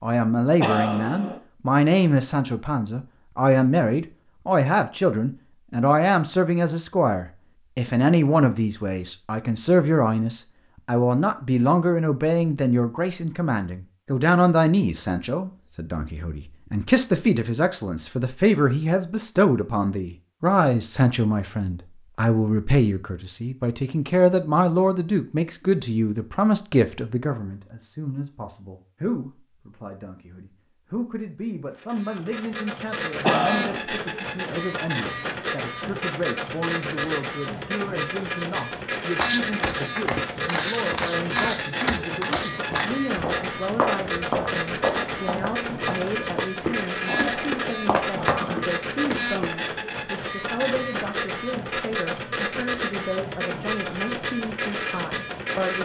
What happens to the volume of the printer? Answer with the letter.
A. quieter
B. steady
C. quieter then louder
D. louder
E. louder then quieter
B.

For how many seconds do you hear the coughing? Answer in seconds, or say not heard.
3 s.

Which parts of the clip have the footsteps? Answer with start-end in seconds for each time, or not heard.
39.1-49.7.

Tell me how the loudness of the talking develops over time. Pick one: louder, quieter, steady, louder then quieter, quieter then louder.
quieter.